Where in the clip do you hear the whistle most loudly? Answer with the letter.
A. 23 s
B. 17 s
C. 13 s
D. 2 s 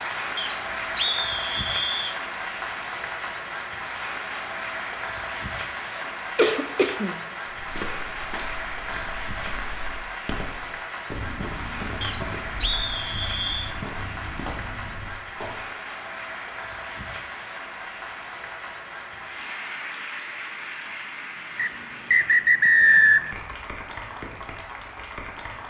A.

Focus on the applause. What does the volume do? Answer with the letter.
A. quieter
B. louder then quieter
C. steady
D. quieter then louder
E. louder
A.